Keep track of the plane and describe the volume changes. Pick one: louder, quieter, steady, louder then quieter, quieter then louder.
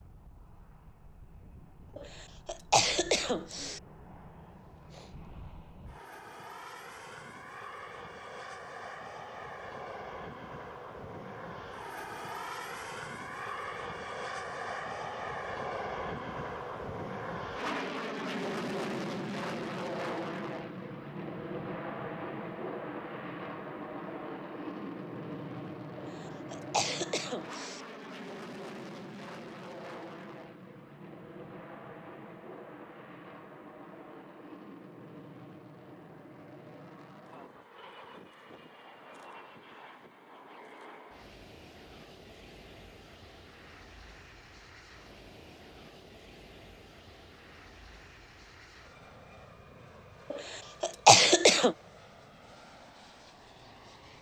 louder then quieter.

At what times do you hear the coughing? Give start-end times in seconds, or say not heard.
1.9-3.8, 25.9-27.8, 50.3-51.8.